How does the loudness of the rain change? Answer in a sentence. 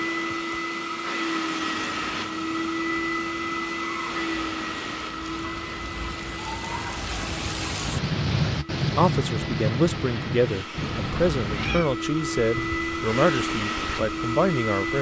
The volume of the rain goes up, then down.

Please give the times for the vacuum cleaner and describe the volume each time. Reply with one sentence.
You can hear the vacuum cleaner from 0.0 to 14.9 s, getting quieter then louder.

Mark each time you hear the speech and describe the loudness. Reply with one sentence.
The speech can be heard from 8.9 to 14.9 s, at a steady volume.